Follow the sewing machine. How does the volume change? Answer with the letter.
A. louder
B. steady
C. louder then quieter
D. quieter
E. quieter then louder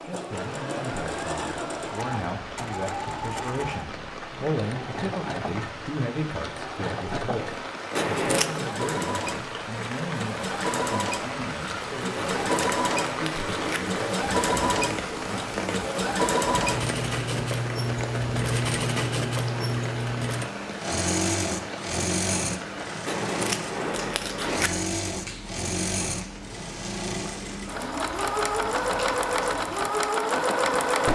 A.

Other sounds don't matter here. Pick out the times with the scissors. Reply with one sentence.
You can hear the scissors from 8.0 to 8.6 s, from 12.2 to 14.1 s and from 23.1 to 24.7 s.